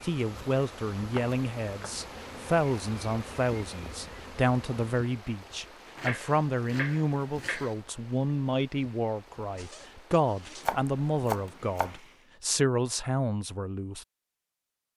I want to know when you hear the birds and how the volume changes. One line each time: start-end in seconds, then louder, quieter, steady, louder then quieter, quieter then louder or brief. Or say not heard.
not heard.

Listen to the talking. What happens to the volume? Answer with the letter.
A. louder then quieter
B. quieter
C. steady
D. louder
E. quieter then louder
C.